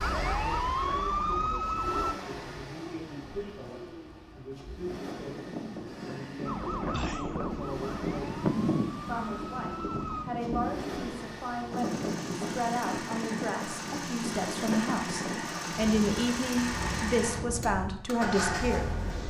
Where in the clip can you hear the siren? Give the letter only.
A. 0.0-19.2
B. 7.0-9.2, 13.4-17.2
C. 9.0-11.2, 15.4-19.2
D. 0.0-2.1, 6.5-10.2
D.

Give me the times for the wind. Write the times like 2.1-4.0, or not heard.
4.8-19.2.